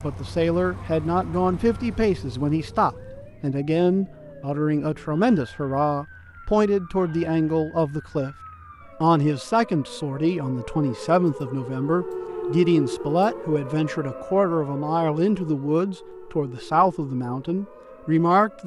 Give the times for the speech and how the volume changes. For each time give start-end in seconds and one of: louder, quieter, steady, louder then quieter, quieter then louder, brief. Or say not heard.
0.0-8.3 steady
9.0-18.6 steady.